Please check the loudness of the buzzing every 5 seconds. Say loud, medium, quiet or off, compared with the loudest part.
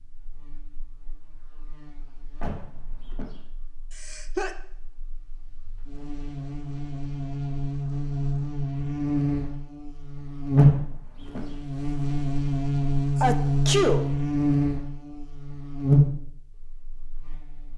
quiet, medium, loud, loud.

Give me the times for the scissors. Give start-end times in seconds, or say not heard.
not heard.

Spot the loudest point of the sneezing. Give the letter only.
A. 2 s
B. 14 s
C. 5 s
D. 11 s
B.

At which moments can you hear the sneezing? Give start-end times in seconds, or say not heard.
4.0-4.5, 13.2-14.1.